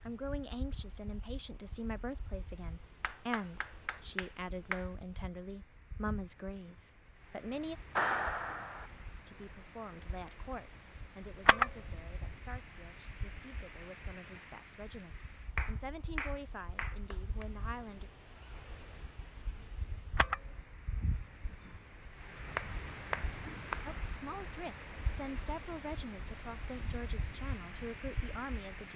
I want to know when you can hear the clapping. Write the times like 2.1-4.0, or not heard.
3.0-4.8, 8.0-8.9, 15.6-17.4, 22.6-23.9.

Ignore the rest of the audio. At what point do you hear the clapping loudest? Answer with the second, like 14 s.
8 s.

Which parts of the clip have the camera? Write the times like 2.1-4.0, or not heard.
11.4-12.3, 20.1-20.7.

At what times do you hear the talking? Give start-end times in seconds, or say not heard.
0.0-7.8, 9.2-18.1, 23.9-28.9.